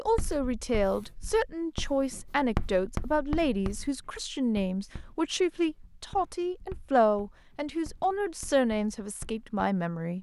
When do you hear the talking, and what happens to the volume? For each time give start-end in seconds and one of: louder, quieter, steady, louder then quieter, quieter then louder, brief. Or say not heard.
0.0-10.1 steady.